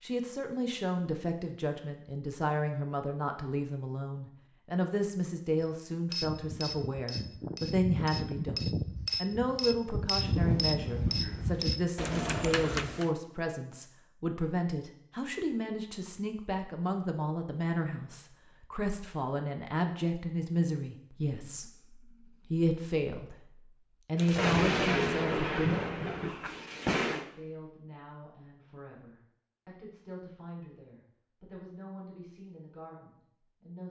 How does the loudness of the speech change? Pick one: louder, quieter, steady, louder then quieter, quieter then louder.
quieter.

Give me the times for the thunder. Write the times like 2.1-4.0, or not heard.
10.2-11.7, 24.1-27.2.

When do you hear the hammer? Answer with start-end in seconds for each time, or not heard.
5.6-13.1.